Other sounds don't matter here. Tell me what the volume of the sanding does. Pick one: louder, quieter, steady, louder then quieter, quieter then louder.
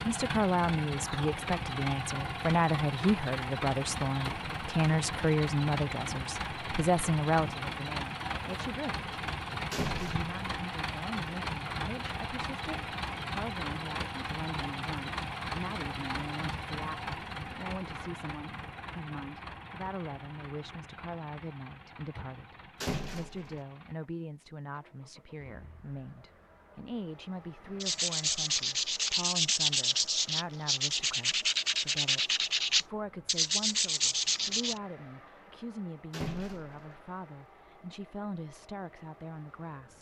steady.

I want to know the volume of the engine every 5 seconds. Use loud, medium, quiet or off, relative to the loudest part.
loud, loud, loud, loud, quiet, quiet, quiet, quiet.